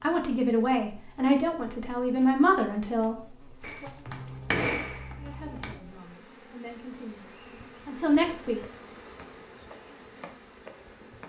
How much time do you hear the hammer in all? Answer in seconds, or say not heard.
2 s.